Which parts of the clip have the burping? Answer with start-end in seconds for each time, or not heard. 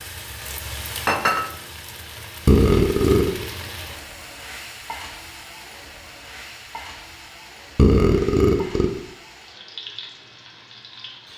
2.5-3.5, 7.8-9.0.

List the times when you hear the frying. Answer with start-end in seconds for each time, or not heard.
0.0-11.3.